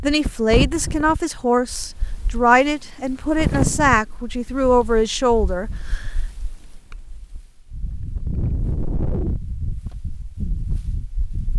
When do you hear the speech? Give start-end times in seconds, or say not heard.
0.0-6.0.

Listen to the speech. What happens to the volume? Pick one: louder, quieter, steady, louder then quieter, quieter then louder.
steady.